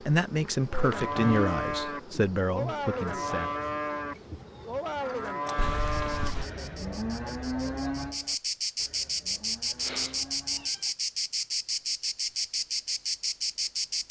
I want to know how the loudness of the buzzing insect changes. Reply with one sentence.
The volume of the buzzing insect goes up.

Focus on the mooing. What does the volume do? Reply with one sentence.
The loudness of the mooing goes down.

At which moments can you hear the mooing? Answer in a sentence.
You can hear the mooing from 0.7 to 10.7 s.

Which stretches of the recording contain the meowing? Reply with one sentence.
The meowing can be heard from 0.9 to 1.6 s, from 5.5 to 6.5 s and from 9.8 to 10.9 s.